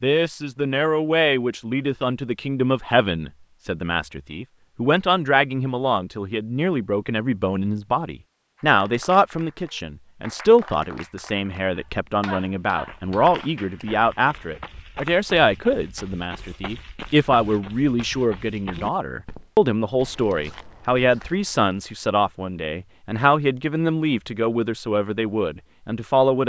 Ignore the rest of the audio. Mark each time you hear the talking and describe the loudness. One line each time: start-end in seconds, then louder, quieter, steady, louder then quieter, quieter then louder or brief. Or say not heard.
0.0-26.4 steady.